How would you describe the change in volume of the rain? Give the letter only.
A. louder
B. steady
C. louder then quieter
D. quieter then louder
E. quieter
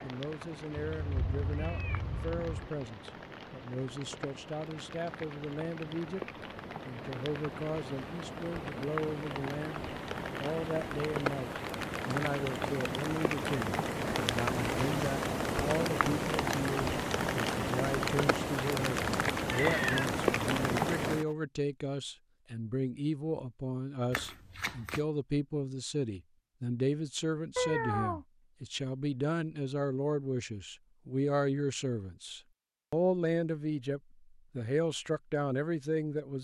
A.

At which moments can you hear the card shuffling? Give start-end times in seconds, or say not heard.
24.1-25.1.